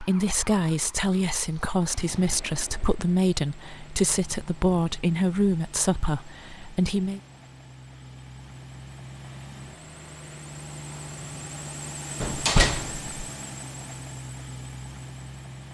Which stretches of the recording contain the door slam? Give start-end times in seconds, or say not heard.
12.2-13.1.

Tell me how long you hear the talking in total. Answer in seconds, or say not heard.
7 s.